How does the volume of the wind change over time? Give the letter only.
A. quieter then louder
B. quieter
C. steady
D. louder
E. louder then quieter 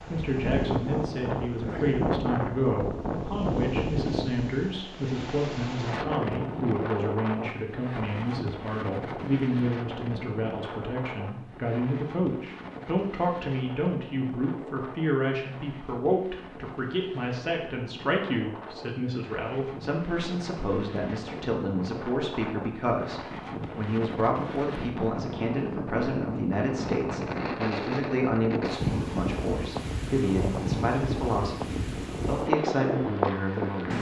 A.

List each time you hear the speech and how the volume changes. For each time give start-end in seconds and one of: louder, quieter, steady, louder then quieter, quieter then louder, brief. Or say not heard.
0.1-33.9 steady.